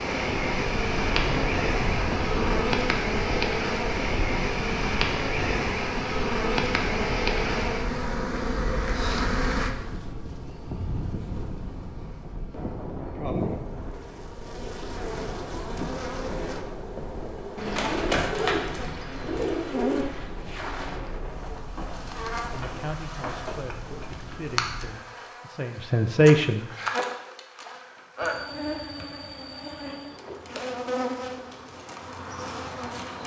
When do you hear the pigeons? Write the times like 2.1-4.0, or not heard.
17.6-20.3.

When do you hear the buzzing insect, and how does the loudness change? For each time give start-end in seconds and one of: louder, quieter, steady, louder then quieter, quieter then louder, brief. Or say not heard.
0.0-33.2 quieter.